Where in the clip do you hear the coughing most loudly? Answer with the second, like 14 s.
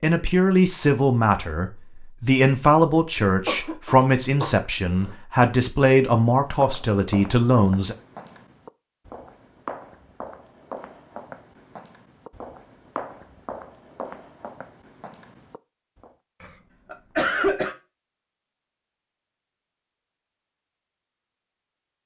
17 s.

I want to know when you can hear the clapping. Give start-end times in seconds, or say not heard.
not heard.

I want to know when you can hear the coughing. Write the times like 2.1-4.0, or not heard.
3.5-5.2, 16.4-17.8.